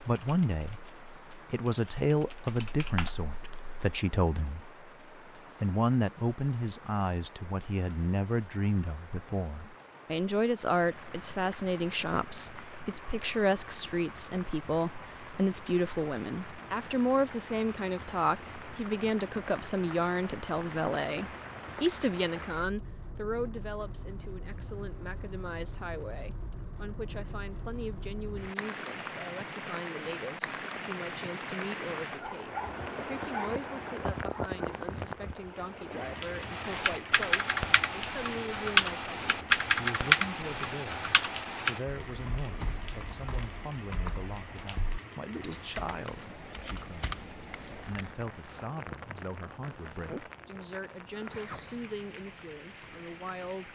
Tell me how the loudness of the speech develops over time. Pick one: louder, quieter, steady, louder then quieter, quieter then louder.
quieter.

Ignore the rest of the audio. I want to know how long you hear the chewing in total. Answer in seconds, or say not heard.
not heard.